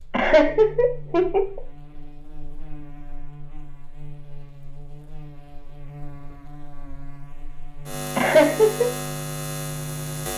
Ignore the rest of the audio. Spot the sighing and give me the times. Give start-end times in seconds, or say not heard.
not heard.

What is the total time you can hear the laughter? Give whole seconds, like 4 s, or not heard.
2 s.